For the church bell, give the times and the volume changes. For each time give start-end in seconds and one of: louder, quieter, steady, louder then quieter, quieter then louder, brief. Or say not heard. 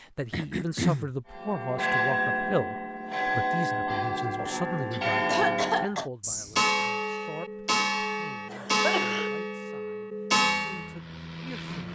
1.3-10.9 steady.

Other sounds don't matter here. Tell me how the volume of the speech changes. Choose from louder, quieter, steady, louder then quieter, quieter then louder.
quieter.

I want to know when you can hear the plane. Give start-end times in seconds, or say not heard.
10.4-11.9.